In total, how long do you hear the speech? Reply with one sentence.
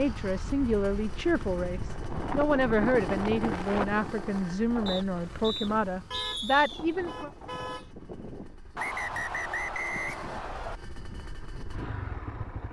You can hear the speech for 7 seconds altogether.